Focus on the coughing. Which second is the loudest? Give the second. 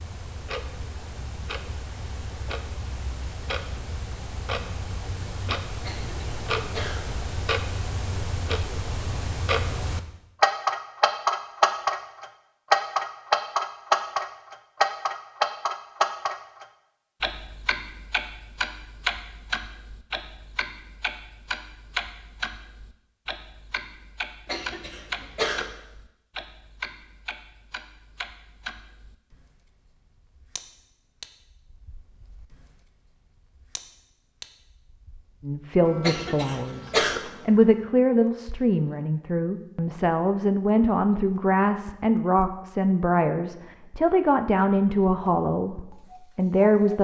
37 s.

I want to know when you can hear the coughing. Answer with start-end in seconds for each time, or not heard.
5.8-7.0, 24.4-25.6, 36.0-37.2.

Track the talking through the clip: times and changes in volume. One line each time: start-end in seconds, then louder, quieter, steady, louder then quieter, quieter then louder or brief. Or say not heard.
35.4-45.8 steady
46.4-46.9 brief.